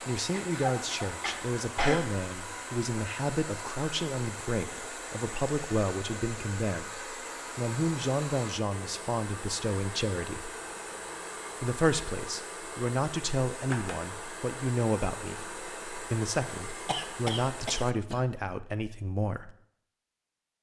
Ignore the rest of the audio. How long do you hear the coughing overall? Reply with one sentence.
The coughing can be heard for 3 seconds in total.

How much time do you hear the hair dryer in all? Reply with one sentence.
You can hear the hair dryer for 18 seconds altogether.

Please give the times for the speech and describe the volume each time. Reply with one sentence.
The speech can be heard from 0.1 to 10.5 s, at a steady volume; and from 11.6 to 19.6 s, at a steady volume.